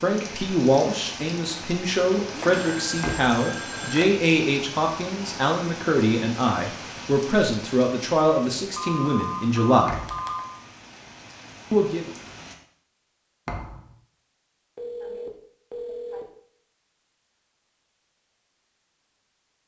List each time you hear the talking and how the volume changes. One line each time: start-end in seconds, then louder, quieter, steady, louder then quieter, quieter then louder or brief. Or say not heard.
0.0-9.9 steady
11.7-12.1 brief.